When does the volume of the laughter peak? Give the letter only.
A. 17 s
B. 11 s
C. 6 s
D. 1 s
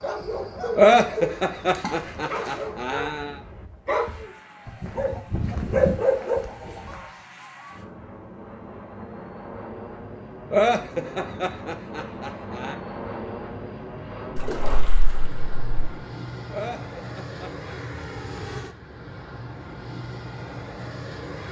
D.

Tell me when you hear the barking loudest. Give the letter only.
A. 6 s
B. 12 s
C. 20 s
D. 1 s
A.